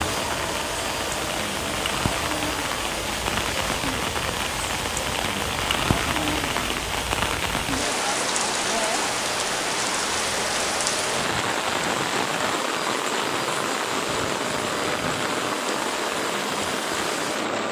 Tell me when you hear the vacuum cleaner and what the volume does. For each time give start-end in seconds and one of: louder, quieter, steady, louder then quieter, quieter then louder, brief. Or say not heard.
0.0-17.6 steady.